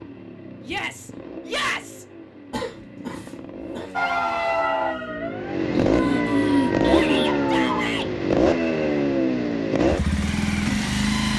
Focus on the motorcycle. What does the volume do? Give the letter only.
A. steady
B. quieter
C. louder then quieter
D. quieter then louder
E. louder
E.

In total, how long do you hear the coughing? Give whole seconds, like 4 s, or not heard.
3 s.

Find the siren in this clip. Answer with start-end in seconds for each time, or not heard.
4.0-7.9.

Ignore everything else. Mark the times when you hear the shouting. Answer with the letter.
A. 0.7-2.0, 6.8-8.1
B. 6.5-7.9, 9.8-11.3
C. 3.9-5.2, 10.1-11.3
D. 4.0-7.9
A.